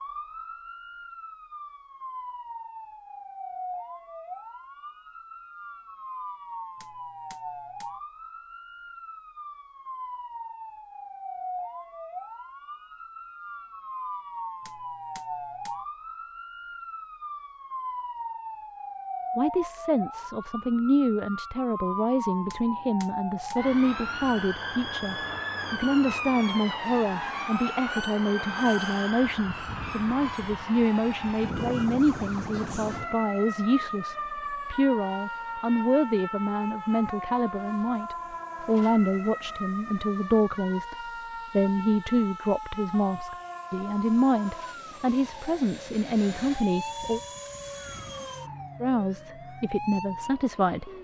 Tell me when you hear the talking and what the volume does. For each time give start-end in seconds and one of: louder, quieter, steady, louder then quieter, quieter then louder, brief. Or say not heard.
19.4-47.2 steady
48.8-50.9 brief.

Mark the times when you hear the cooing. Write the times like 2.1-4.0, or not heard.
not heard.